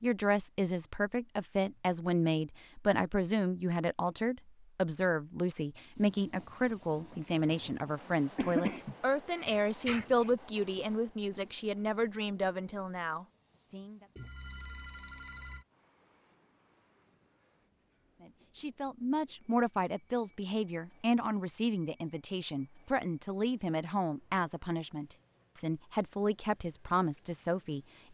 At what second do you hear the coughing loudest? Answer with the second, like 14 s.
9 s.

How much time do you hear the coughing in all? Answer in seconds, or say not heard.
2 s.